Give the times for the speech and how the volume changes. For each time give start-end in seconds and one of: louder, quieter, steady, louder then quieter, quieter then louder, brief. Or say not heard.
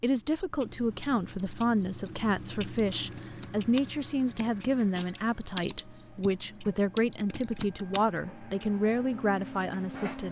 0.0-10.2 steady.